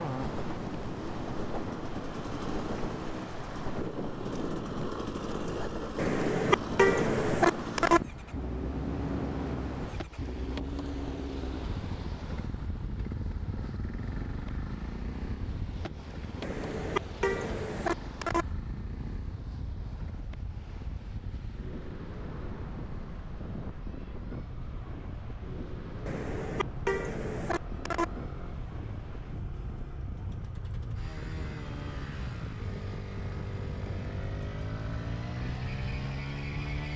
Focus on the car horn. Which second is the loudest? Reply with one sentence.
The volume of the car horn peaks at 7 seconds.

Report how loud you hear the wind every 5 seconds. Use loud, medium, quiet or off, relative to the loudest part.
loud, loud, medium, medium, medium, medium, medium, off.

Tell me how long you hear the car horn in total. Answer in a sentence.
You can hear the car horn for 6 seconds altogether.